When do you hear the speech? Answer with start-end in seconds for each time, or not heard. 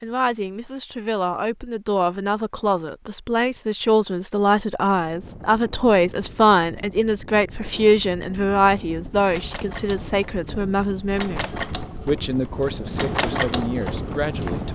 0.0-14.7.